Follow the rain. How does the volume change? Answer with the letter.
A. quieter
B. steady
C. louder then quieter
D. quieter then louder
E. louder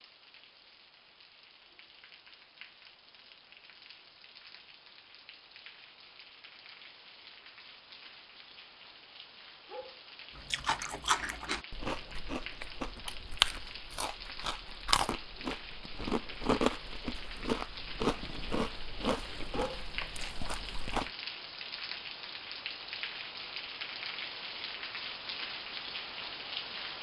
E.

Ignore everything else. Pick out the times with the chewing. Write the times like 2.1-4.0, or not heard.
10.3-21.1.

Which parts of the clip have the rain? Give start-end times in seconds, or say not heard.
0.0-26.9.